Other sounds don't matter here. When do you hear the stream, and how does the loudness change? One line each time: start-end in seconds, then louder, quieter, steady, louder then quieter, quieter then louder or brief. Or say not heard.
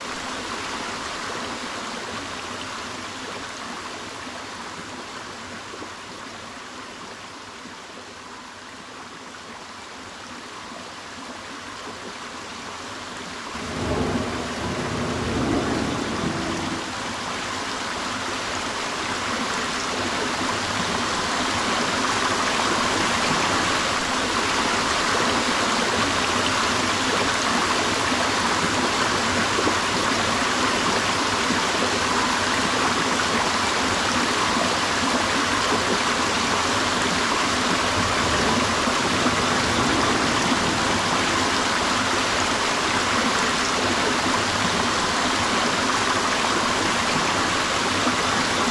0.0-48.6 louder.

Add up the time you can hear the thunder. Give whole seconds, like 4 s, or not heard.
7 s.